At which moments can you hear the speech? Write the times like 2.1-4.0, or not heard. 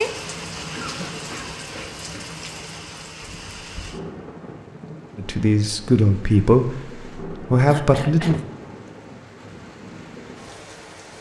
5.2-8.4.